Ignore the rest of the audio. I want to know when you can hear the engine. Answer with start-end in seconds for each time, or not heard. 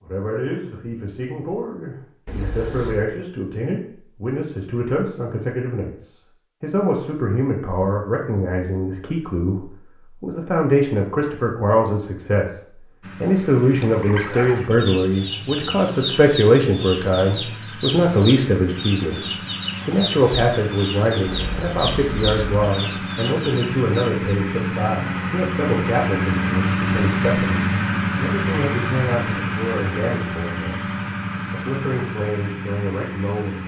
13.0-33.6.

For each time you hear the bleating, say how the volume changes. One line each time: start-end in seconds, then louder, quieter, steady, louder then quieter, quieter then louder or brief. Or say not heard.
not heard.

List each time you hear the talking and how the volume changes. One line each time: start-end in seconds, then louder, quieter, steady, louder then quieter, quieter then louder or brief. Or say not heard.
0.0-30.9 louder then quieter
31.5-33.6 brief.